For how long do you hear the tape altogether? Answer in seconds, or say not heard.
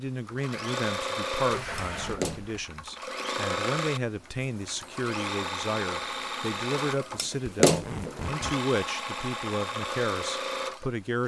2 s.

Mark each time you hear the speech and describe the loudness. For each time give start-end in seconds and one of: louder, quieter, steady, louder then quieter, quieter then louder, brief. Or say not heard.
0.0-11.2 steady.